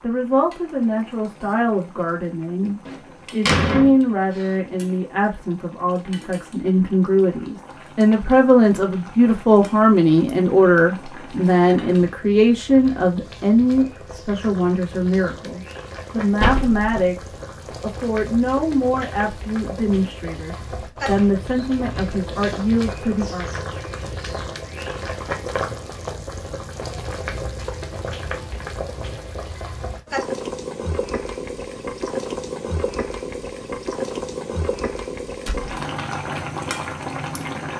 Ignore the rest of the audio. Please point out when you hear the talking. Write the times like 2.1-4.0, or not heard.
0.0-23.5.